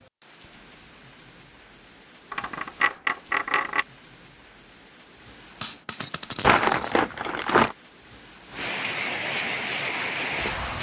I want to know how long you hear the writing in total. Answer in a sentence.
You can't hear the writing here.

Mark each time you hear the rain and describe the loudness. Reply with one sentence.
The rain can be heard from 0.0 to 10.7 s, getting louder.